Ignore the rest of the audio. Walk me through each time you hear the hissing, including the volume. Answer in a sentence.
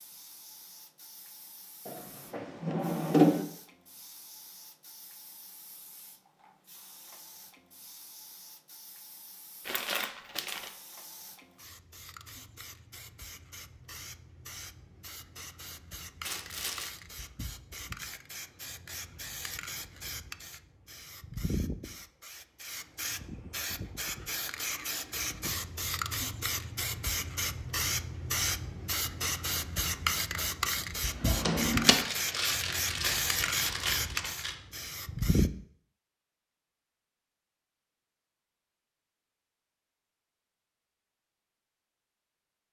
The hissing can be heard from 0.0 to 35.5 s, getting louder.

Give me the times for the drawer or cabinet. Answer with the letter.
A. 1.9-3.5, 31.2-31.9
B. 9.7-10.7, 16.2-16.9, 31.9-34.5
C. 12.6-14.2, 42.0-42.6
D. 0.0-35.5
A.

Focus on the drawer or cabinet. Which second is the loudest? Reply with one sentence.
The volume of the drawer or cabinet peaks at 3 seconds.